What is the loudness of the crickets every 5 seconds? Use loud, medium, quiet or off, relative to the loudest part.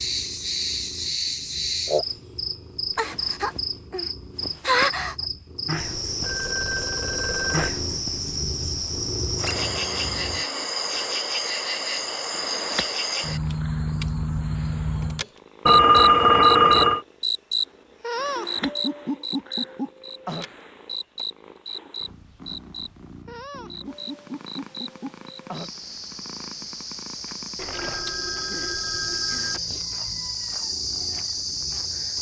loud, loud, loud, loud, medium, medium, loud.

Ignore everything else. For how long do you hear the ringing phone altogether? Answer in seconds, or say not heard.
5 s.